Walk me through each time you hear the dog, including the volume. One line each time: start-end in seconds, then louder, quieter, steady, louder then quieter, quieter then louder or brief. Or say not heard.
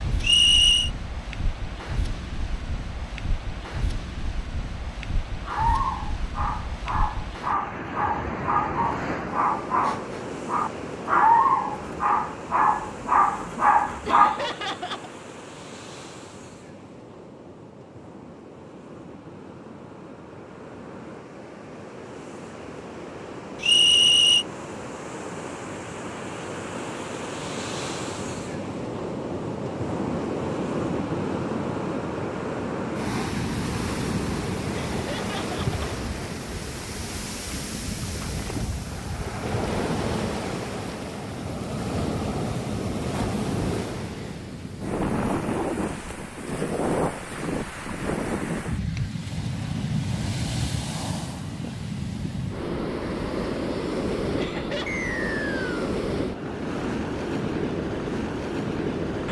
5.5-14.5 louder.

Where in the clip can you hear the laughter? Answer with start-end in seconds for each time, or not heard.
14.1-15.1, 34.7-35.9, 54.4-55.0.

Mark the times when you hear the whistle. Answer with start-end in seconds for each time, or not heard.
0.2-0.9, 23.6-24.4, 54.9-55.9.